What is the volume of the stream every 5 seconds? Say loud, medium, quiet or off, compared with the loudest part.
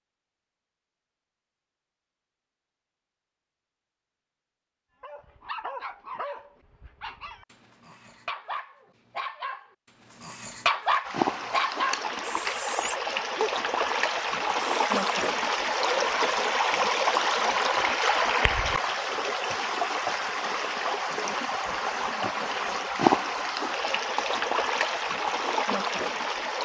off, off, loud, loud, loud, loud.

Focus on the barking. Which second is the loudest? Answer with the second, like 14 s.
11 s.